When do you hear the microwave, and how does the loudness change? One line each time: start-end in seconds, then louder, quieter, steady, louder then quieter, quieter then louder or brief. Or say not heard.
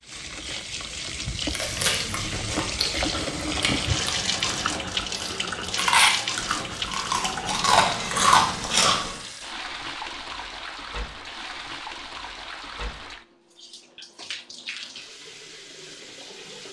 not heard.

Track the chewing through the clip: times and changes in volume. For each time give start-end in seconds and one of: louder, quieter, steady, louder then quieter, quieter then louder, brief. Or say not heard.
1.5-9.2 louder.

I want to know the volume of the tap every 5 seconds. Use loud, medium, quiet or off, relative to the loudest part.
loud, loud, medium, quiet.